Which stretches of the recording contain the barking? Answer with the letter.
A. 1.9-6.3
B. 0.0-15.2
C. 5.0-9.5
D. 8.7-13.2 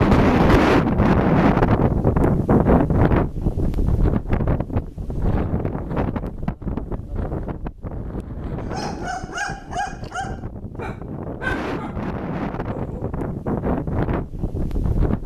D.